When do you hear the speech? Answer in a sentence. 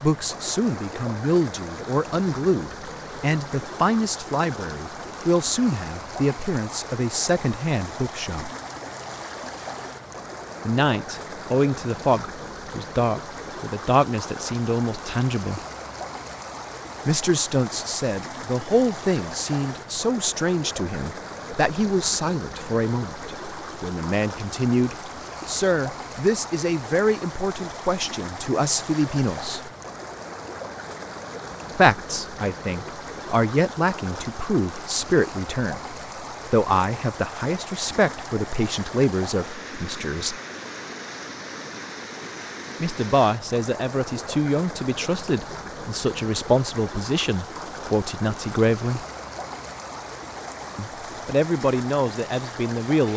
You can hear the speech from 0.0 to 8.5 s, from 10.7 to 15.6 s, from 17.1 to 29.7 s, from 31.8 to 40.4 s, from 42.8 to 49.0 s and from 50.8 to 53.1 s.